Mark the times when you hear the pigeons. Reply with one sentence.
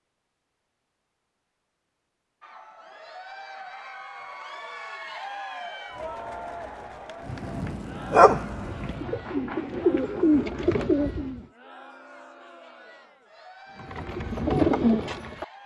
The pigeons can be heard from 8.5 to 11.4 s and from 13.8 to 15.4 s.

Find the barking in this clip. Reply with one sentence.
The barking can be heard from 7.3 to 8.4 s.